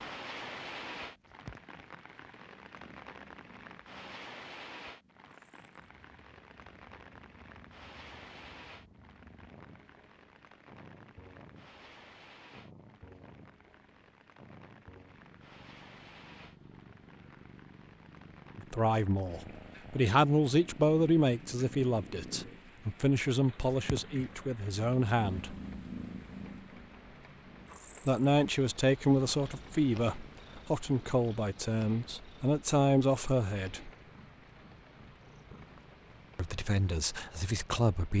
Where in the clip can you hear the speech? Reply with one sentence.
The speech can be heard from 18.6 to 25.6 s, from 28.1 to 33.9 s and from 36.4 to 38.1 s.